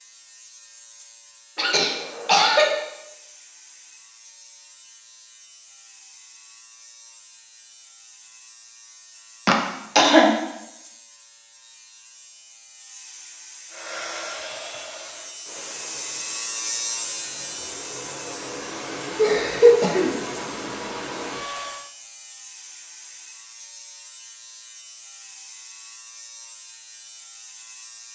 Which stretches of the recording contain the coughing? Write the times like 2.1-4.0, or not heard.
1.6-2.8, 9.4-10.3, 19.1-20.1.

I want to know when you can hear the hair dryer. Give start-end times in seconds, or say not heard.
13.7-21.9.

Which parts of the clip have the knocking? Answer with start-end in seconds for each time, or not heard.
not heard.